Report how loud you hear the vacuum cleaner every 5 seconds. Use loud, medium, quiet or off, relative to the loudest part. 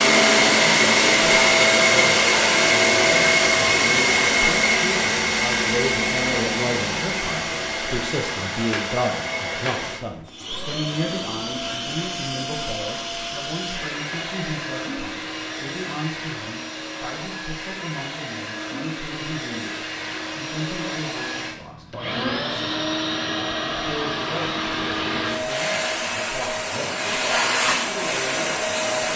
loud, medium, quiet, quiet, medium, medium.